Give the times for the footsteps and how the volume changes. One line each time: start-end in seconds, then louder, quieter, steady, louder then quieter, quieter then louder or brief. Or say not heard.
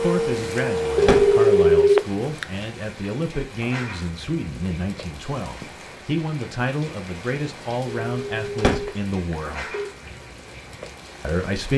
not heard.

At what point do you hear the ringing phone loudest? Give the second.
2 s.